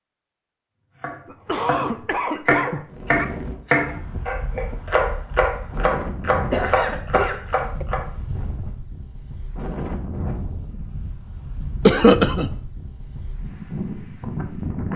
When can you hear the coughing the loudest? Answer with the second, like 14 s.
12 s.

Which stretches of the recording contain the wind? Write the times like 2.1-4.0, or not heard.
2.9-14.9.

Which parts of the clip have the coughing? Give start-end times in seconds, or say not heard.
1.2-3.2, 6.5-7.8, 11.8-12.5.